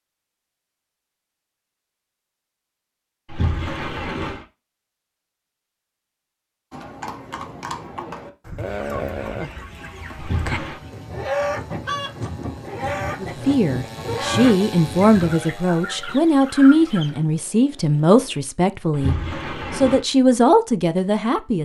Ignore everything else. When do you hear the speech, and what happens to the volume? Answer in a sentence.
You can hear the speech from 13.2 to 21.5 s, at a steady volume.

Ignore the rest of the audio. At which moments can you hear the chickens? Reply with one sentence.
You can hear the chickens from 8.6 to 17.2 s.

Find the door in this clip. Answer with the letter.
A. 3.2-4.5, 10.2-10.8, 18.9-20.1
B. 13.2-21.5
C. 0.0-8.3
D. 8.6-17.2
A.